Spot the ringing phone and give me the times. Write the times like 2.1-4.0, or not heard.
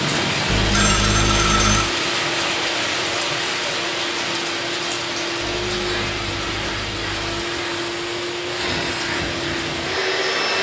0.5-1.9, 5.4-7.4.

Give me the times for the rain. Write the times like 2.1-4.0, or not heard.
0.0-10.5.